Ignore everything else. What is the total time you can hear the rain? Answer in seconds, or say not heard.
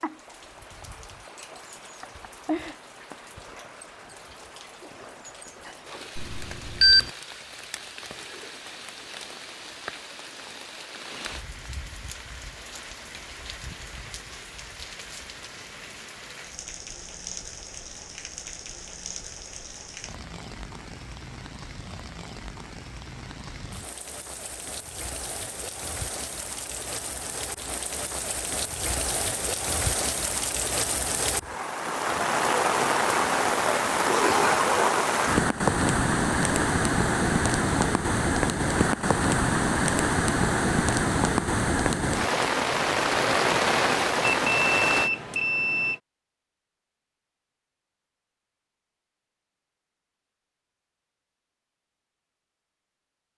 45 s.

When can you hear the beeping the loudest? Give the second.
7 s.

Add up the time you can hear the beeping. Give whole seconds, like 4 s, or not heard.
3 s.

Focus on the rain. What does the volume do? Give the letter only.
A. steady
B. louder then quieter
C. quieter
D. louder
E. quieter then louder
D.